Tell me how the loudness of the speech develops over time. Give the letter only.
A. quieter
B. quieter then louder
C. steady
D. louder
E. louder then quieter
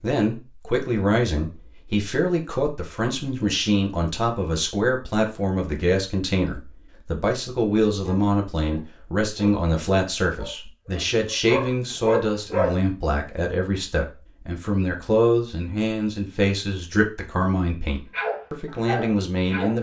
C.